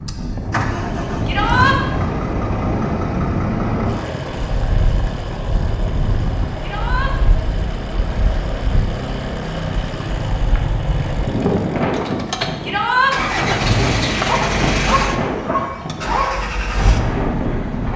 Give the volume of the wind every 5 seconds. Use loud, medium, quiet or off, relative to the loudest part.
loud, medium, loud, loud.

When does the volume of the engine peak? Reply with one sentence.
The volume of the engine peaks at 14 seconds.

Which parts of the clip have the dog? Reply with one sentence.
You can hear the dog from 14.2 to 16.5 s.